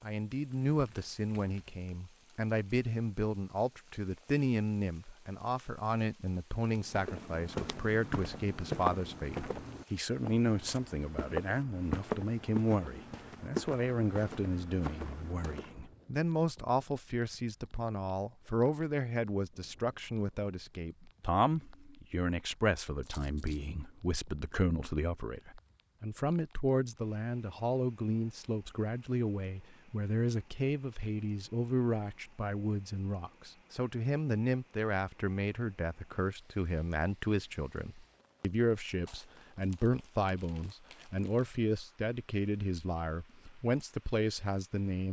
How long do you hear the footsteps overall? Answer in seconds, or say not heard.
9 s.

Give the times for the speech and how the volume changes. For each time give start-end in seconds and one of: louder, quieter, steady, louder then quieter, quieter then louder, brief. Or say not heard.
0.0-45.0 steady.